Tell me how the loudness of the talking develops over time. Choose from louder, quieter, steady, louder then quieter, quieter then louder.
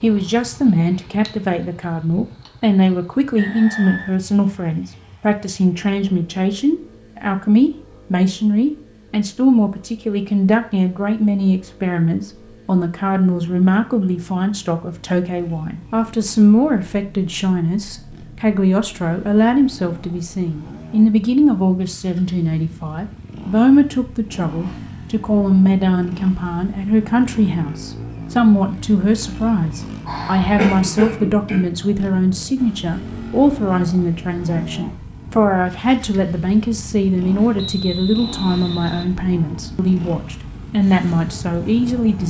steady.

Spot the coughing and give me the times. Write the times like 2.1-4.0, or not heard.
30.1-31.6.